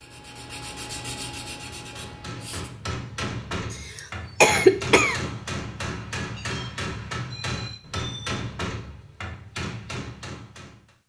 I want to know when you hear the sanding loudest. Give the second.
1 s.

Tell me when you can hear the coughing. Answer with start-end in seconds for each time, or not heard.
3.7-5.2.